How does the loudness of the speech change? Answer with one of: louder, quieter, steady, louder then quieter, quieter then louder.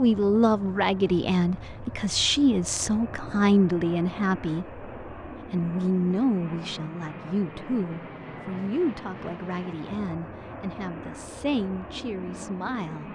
quieter.